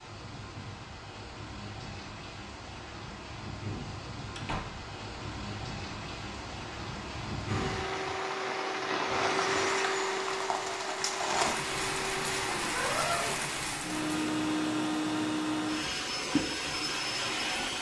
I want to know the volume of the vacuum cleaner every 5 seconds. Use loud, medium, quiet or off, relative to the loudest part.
off, loud, loud, loud.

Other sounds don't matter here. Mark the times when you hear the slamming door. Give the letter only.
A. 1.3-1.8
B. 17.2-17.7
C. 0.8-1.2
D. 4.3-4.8
D.